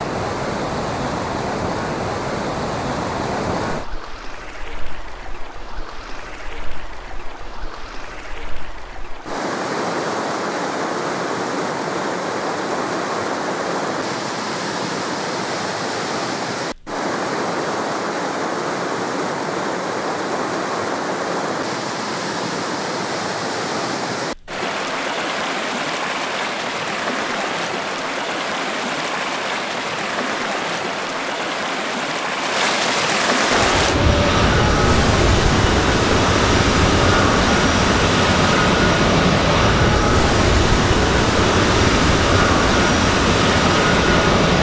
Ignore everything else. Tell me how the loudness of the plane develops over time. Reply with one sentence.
The loudness of the plane stays about the same.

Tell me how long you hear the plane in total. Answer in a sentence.
You can hear the plane for 11 seconds altogether.